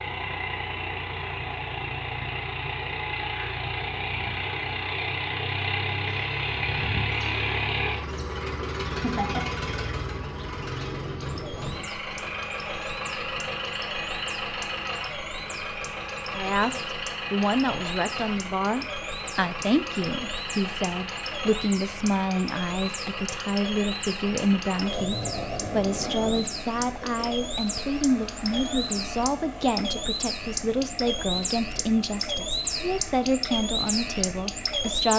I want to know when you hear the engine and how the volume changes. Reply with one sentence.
You can hear the engine from 0.0 to 35.1 s, getting quieter.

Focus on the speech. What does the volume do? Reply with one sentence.
The loudness of the speech stays about the same.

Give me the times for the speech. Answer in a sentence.
You can hear the speech from 16.4 to 35.1 s.